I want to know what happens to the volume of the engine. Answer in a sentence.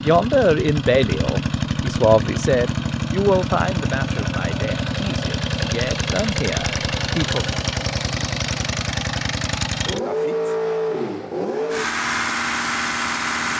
The volume of the engine stays about the same.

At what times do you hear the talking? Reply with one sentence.
You can hear the talking from 0.0 to 7.6 s.